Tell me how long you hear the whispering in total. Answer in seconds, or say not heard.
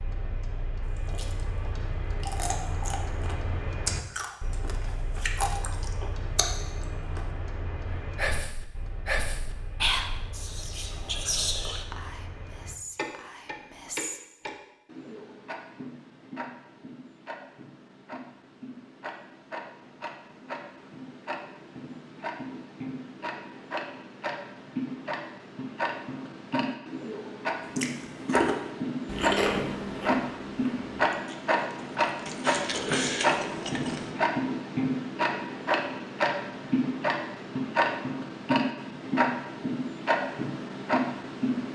6 s.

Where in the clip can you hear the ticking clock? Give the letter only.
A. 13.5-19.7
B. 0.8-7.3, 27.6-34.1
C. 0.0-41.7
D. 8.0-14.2
C.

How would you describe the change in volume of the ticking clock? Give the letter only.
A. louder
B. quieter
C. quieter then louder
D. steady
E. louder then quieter
A.